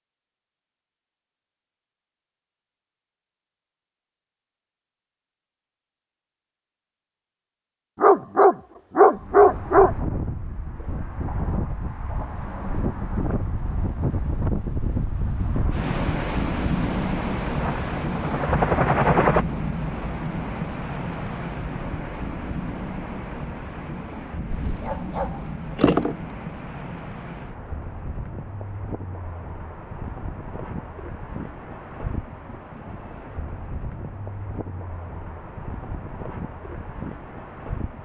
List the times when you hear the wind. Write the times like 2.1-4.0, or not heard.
9.2-38.0.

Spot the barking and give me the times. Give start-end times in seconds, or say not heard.
8.0-9.9, 24.5-26.1.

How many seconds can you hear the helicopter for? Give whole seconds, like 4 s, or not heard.
2 s.